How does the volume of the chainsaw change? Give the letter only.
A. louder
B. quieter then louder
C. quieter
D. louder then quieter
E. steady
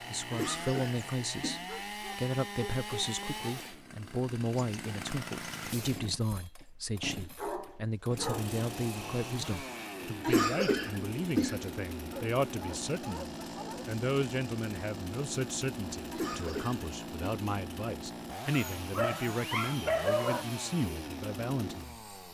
E.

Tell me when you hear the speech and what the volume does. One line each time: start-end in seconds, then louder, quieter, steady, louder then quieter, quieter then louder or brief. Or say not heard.
0.1-22.3 steady.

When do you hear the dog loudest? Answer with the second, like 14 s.
20 s.